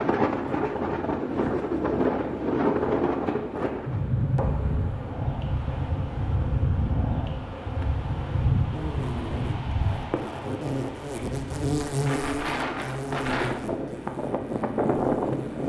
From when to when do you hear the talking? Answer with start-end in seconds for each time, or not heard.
not heard.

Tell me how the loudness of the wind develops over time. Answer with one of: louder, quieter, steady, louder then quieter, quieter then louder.
quieter then louder.